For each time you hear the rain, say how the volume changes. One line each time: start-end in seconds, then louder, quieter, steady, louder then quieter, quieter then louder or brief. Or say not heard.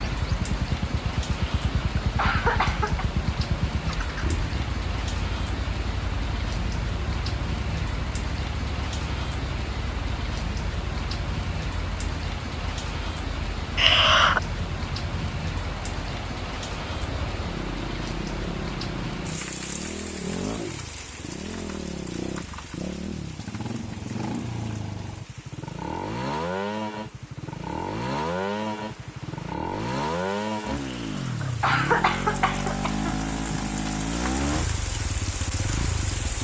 0.0-36.3 quieter then louder.